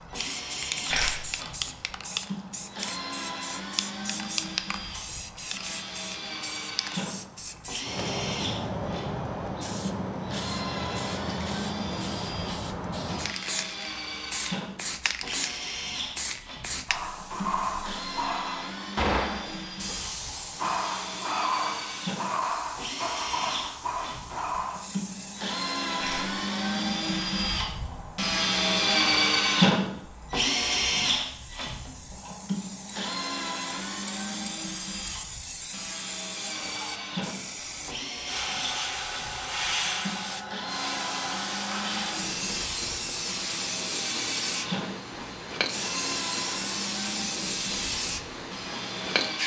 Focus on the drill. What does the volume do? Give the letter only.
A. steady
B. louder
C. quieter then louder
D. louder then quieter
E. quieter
D.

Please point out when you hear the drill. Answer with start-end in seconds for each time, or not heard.
0.0-49.4.